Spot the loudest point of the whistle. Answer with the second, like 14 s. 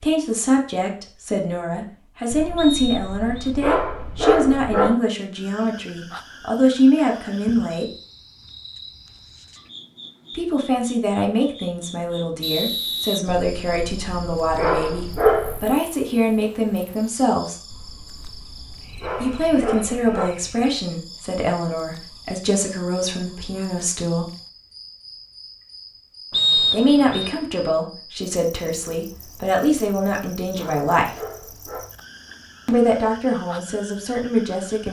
27 s.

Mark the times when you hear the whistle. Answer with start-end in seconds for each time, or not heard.
2.5-3.5, 12.4-13.2, 26.3-27.3.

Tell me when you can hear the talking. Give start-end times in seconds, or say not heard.
0.0-7.9, 10.3-17.8, 19.2-24.3, 26.7-31.2, 32.6-34.8.